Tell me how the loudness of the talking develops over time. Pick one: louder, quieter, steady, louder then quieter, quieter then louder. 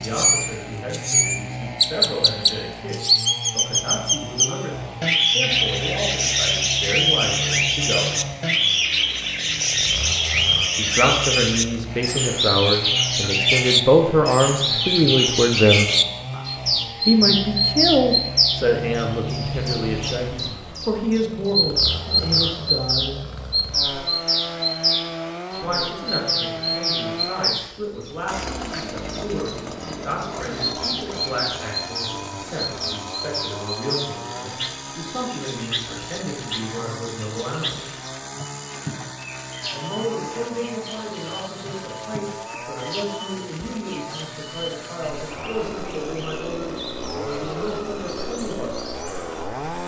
louder then quieter.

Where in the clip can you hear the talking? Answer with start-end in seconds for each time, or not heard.
0.0-8.2, 10.8-15.9, 17.1-23.1, 25.6-37.9, 39.7-48.8.